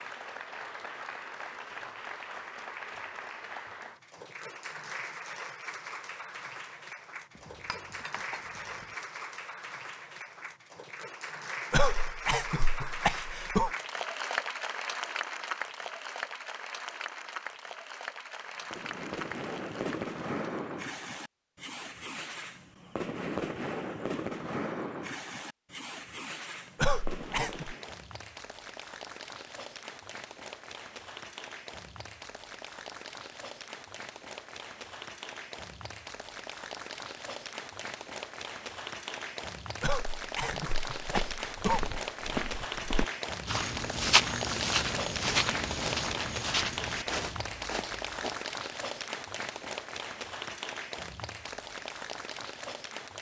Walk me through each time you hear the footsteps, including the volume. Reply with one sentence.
You can hear the footsteps from 40.5 to 48.4 s, getting louder then quieter.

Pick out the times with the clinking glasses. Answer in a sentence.
You can hear the clinking glasses from 7.3 to 8.9 s.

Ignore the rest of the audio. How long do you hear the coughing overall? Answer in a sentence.
You can hear the coughing for 5 seconds altogether.